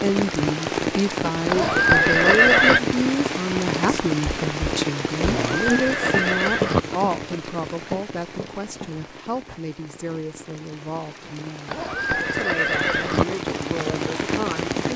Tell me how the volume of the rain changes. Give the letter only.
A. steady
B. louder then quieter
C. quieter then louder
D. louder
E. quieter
C.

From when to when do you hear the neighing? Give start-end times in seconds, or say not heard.
1.4-2.8, 5.2-6.8, 11.7-13.2.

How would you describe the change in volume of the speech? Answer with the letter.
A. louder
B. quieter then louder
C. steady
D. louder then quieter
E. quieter
E.